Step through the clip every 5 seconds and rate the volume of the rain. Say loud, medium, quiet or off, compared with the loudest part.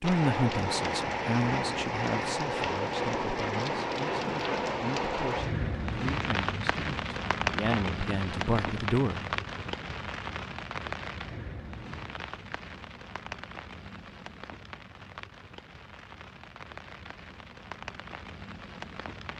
loud, loud, medium, quiet.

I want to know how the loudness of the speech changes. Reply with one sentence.
The loudness of the speech goes down, then up.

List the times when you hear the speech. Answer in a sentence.
The speech can be heard from 0.0 to 9.2 s.